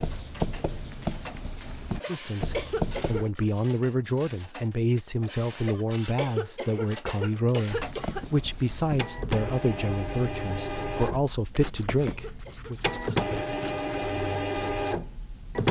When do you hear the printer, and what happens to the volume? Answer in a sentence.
The printer can be heard from 0.0 to 15.6 s, getting louder.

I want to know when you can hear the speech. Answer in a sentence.
The speech can be heard from 2.0 to 12.8 s.